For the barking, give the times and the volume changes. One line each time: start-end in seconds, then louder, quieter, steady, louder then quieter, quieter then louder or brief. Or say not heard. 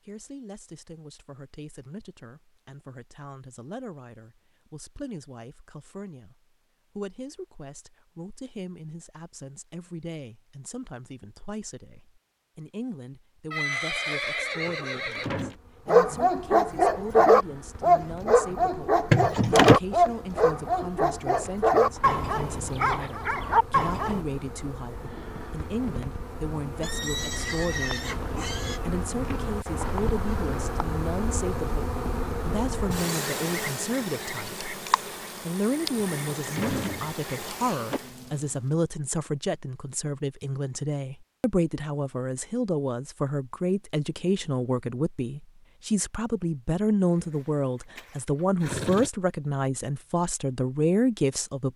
15.8-24.2 quieter.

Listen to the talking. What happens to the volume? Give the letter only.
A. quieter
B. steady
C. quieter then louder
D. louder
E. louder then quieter
D.